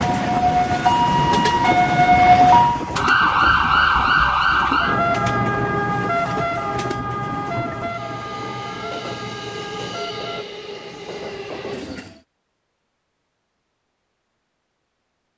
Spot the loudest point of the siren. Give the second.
2 s.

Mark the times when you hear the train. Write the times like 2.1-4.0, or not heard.
0.0-12.2.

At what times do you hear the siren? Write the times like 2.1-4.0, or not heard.
0.0-10.4.